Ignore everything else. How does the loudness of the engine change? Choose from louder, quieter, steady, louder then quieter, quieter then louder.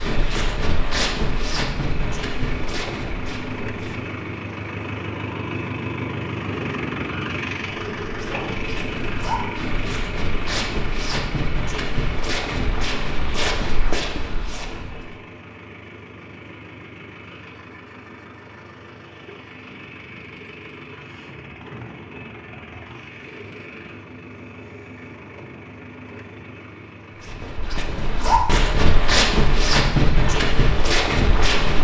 quieter.